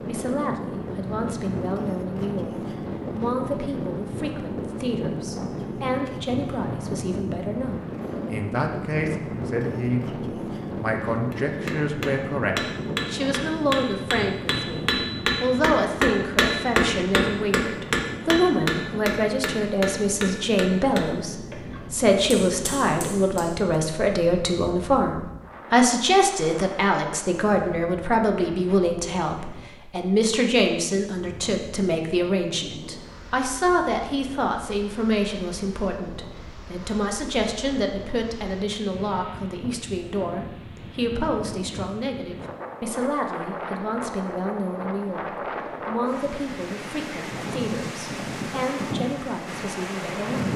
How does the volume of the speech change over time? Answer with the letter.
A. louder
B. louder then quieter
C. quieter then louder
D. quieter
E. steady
B.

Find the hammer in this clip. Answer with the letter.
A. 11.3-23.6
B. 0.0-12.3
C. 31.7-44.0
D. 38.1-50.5
A.